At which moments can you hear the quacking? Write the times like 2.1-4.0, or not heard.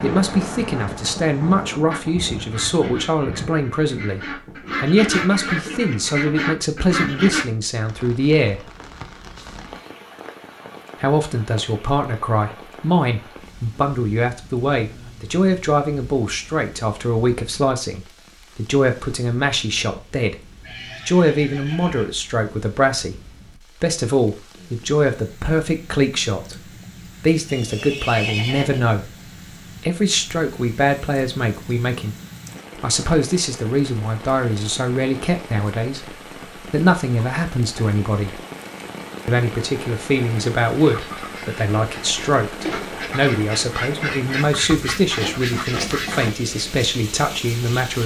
1.9-7.5, 40.8-46.4.